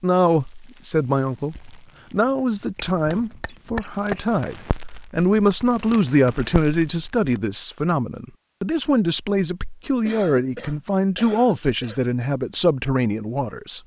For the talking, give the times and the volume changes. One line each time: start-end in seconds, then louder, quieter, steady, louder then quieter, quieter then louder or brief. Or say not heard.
0.0-13.8 steady.